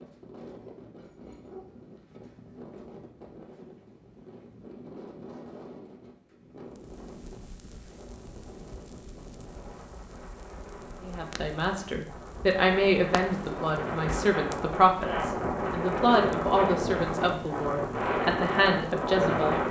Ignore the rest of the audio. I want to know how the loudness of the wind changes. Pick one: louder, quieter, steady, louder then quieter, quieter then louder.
louder.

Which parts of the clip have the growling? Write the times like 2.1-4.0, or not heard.
0.9-1.9.